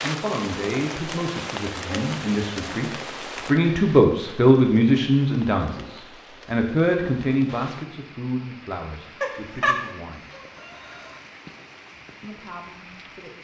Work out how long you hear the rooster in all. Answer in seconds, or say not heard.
2 s.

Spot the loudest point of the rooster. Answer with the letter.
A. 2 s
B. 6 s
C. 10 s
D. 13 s
C.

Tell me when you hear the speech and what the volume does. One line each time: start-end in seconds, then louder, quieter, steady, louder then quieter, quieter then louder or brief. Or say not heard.
0.0-10.3 louder then quieter
12.2-13.3 brief.